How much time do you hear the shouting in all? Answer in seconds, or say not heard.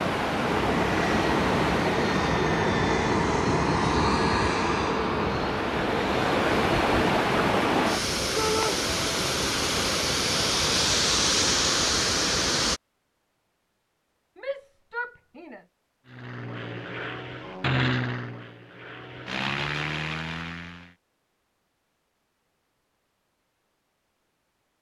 2 s.